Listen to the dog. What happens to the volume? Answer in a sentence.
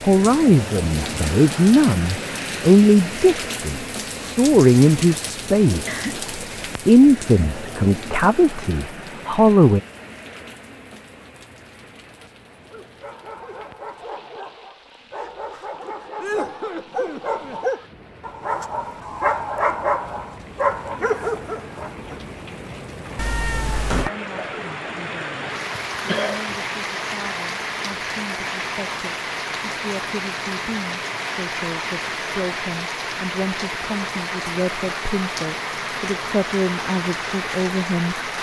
The volume of the dog goes up.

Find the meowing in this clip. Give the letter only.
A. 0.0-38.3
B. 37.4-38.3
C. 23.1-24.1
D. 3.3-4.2
C.